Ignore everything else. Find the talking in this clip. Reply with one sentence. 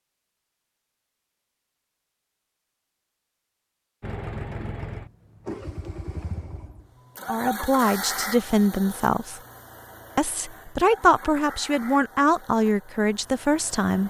The talking can be heard from 7.2 to 9.4 s and from 10.2 to 14.0 s.